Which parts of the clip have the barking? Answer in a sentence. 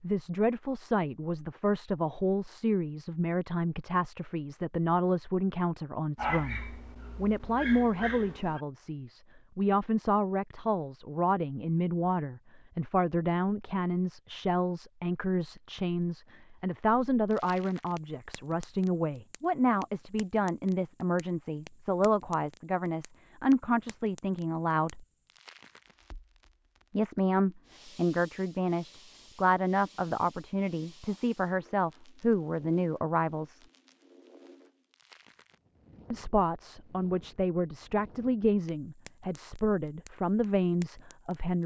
The barking can be heard from 6.2 to 8.6 s.